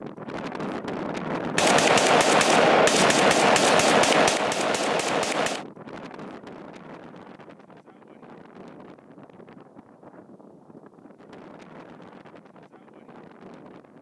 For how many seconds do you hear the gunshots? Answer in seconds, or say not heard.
4 s.